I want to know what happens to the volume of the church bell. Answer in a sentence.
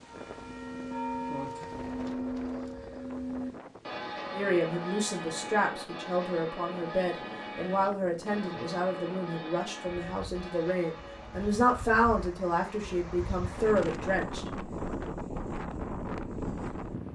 The volume of the church bell goes down.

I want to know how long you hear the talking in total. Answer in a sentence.
You can hear the talking for 10 seconds altogether.